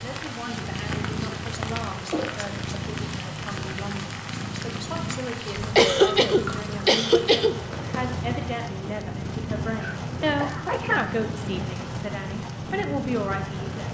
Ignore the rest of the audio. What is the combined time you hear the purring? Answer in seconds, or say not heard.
14 s.